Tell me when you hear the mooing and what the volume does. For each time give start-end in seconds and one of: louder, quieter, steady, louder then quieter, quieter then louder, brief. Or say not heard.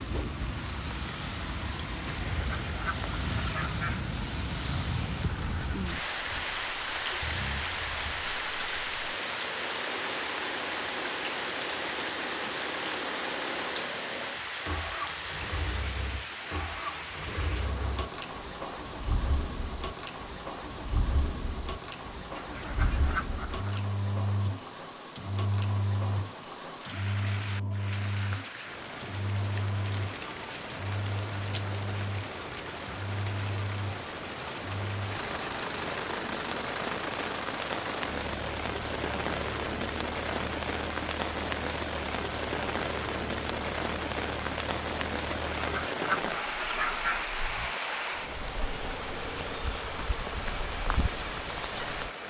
not heard.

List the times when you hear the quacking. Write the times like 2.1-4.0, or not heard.
2.3-4.0, 22.4-23.9, 45.5-47.2.